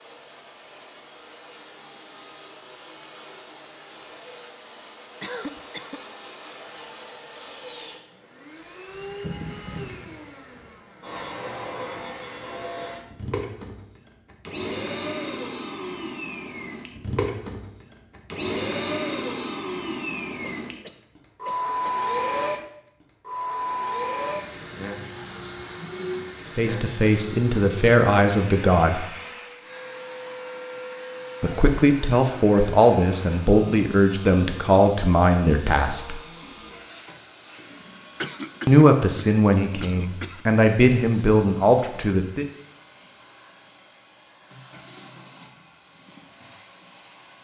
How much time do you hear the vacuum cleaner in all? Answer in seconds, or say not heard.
47 s.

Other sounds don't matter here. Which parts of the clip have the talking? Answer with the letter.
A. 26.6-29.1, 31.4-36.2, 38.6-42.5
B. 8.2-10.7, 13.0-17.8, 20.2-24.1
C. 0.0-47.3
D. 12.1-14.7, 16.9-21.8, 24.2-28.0
A.